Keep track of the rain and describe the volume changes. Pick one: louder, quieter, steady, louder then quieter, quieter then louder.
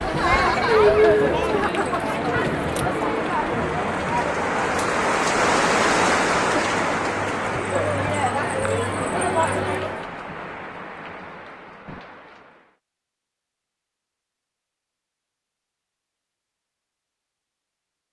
louder then quieter.